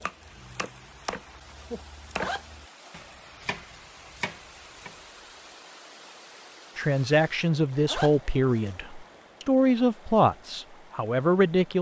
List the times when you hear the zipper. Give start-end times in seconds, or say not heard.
2.1-3.1, 7.8-8.8.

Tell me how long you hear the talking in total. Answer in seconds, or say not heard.
5 s.